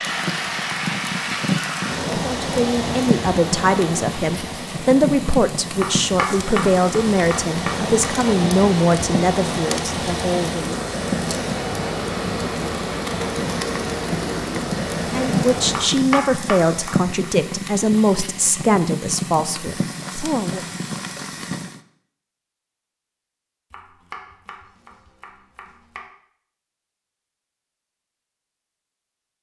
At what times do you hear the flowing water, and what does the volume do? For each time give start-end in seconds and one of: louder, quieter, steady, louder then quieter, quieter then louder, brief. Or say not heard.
0.0-16.1 quieter then louder.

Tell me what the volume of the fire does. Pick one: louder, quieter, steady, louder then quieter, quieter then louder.
steady.